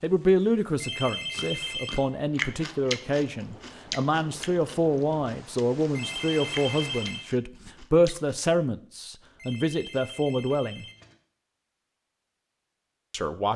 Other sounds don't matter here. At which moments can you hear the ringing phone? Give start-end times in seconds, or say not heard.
0.8-2.0, 5.9-7.2, 9.3-11.2.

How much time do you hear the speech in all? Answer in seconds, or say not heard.
11 s.